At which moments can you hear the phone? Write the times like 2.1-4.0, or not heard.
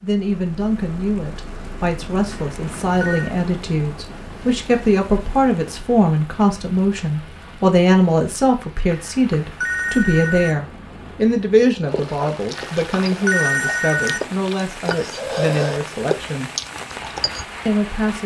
2.3-3.3, 8.8-10.6, 12.6-14.2.